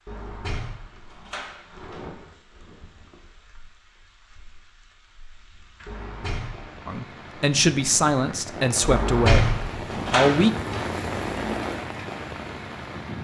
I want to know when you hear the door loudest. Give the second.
9 s.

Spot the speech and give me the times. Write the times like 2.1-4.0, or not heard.
6.8-10.5.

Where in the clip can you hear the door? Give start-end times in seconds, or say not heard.
0.1-2.0, 5.8-6.8, 8.8-10.9.